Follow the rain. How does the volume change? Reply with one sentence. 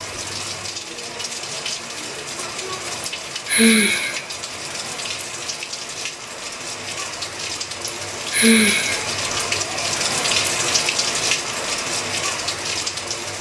The loudness of the rain goes up.